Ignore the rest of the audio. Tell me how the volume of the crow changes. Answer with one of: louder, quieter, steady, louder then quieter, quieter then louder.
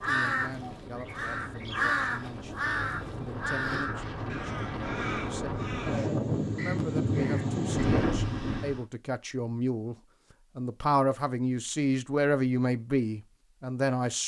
louder then quieter.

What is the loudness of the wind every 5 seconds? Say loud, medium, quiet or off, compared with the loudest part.
medium, loud, off.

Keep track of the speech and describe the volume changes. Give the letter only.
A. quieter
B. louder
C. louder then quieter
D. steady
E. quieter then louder
B.